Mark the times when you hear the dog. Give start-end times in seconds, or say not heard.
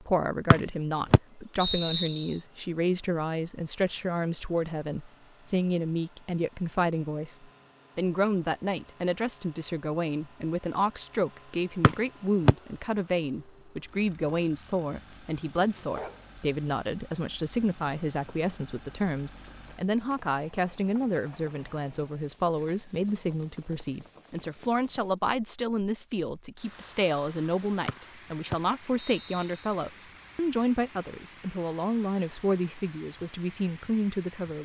15.1-16.3.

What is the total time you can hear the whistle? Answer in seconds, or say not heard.
4 s.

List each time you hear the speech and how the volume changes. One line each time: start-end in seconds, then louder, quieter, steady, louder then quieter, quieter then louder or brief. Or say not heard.
0.0-34.5 steady.